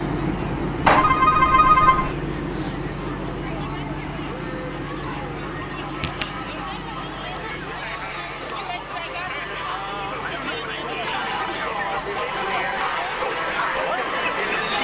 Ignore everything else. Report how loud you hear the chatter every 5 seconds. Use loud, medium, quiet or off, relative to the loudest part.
quiet, medium, loud.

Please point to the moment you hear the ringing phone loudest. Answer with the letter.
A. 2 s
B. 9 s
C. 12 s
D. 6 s
A.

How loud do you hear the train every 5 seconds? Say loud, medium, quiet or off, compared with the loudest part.
loud, medium, quiet.